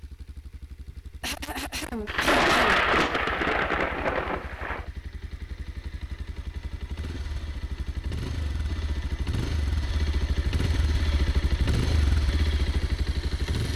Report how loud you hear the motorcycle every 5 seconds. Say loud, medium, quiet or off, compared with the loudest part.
quiet, medium, loud.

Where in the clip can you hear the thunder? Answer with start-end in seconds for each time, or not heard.
2.0-4.8.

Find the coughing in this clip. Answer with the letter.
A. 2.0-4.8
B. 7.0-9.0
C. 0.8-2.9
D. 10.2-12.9
C.